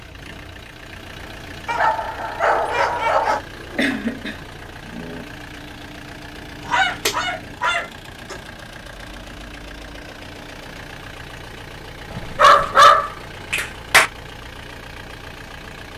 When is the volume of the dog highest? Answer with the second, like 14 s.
13 s.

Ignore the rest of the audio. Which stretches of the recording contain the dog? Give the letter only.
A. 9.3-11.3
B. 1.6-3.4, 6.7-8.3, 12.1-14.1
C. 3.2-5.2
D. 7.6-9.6
B.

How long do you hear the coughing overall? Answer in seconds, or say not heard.
2 s.